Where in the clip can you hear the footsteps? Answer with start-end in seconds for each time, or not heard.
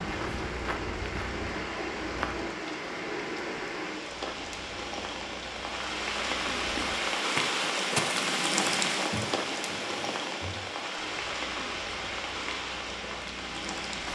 0.0-2.5, 4.1-14.1.